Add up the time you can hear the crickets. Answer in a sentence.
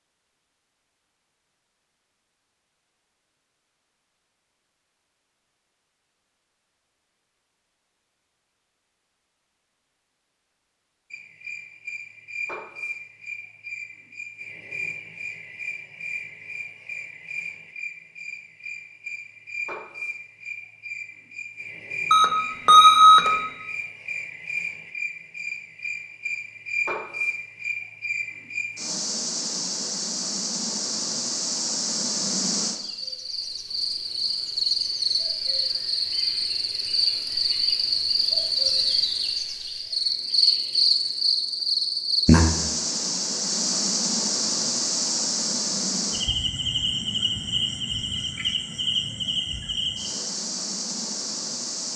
You can hear the crickets for 41 seconds altogether.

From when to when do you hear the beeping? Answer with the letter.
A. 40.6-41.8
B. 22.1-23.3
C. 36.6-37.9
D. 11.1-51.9
B.